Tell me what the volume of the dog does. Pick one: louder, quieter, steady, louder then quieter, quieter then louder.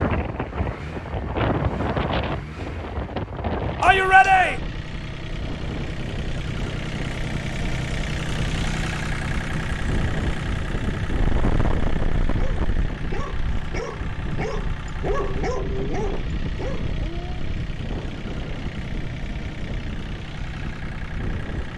louder then quieter.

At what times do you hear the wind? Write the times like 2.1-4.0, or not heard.
0.0-21.7.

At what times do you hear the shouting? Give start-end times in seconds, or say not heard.
3.8-4.6.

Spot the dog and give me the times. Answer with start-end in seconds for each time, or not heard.
12.3-17.4.